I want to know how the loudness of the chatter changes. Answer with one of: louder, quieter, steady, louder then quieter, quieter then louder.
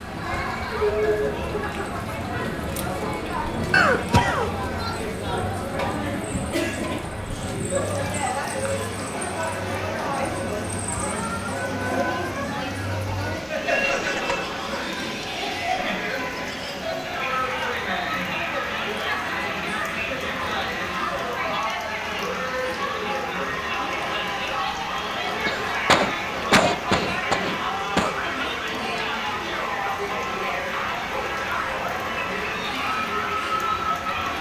steady.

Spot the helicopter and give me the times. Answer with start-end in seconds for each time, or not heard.
not heard.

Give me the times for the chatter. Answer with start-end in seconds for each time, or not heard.
0.0-34.3.